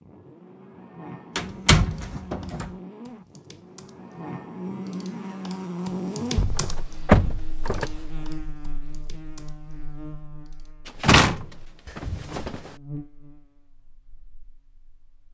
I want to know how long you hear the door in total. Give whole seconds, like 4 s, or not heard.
5 s.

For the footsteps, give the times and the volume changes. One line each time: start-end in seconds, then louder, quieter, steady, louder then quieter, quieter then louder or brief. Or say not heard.
not heard.